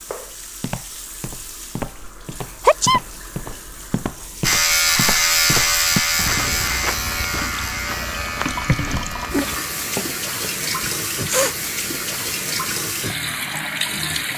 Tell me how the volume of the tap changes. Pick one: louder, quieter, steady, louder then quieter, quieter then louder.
louder.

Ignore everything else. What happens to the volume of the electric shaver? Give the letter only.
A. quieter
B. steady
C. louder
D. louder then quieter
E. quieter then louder
A.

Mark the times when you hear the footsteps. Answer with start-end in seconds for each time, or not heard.
0.1-10.5.